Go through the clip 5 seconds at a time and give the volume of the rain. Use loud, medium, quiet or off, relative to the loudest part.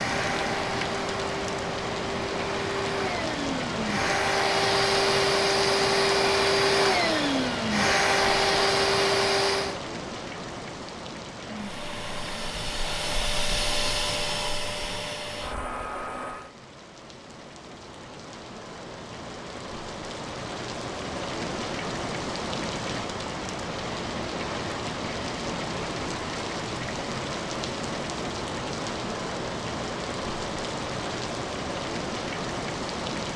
loud, loud, medium, medium, loud, loud, loud.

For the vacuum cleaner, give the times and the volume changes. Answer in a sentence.
The vacuum cleaner can be heard from 0.0 to 9.8 s, getting louder; and from 11.3 to 16.6 s, getting louder then quieter.